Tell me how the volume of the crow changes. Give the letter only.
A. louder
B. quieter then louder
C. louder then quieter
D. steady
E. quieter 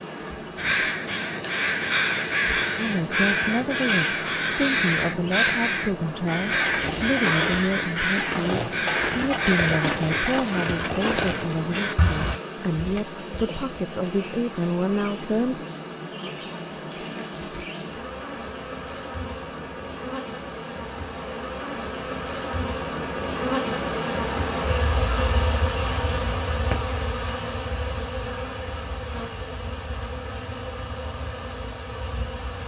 D.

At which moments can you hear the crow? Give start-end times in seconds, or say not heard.
0.6-12.4.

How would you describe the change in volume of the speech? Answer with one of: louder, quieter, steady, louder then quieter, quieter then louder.
steady.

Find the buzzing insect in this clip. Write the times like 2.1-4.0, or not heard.
0.0-32.6.